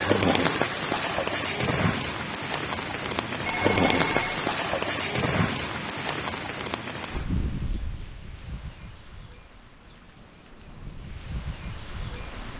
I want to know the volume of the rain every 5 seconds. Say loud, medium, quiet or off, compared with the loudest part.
loud, medium, quiet.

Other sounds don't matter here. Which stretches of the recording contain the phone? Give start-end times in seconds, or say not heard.
3.4-4.5.